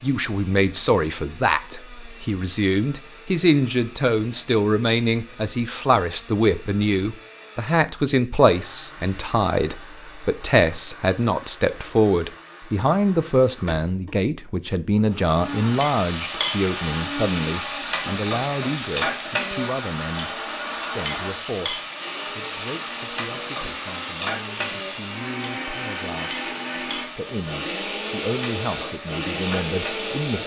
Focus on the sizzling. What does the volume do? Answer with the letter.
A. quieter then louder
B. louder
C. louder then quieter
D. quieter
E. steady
D.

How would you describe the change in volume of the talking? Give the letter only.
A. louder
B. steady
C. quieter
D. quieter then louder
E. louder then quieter
C.